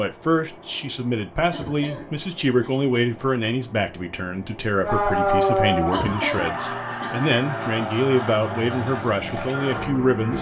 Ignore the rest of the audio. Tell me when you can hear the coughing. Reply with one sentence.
You can hear the coughing from 1.5 to 2.8 s and from 5.9 to 7.5 s.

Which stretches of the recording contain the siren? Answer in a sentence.
You can hear the siren from 4.8 to 6.8 s.